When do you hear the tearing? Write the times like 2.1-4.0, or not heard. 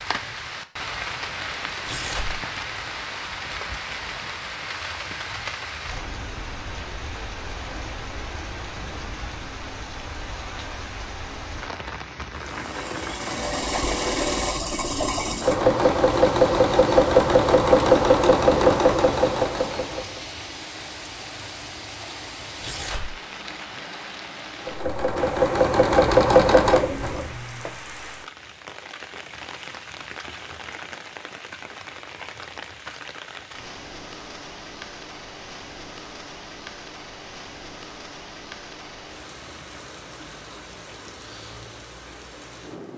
1.8-2.5, 22.6-23.2.